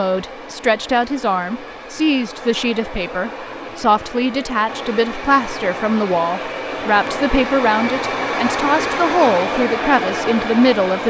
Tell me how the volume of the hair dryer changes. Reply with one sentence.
The volume of the hair dryer goes up.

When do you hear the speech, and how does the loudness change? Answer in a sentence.
The speech can be heard from 0.0 to 11.0 s, at a steady volume.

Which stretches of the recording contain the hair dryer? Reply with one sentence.
The hair dryer can be heard from 0.0 to 11.0 s.